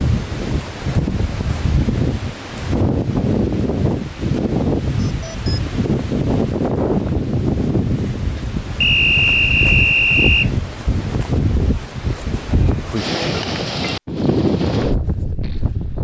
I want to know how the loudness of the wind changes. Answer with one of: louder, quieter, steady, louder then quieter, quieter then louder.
steady.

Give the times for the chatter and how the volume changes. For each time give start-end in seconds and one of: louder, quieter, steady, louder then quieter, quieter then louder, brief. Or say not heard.
not heard.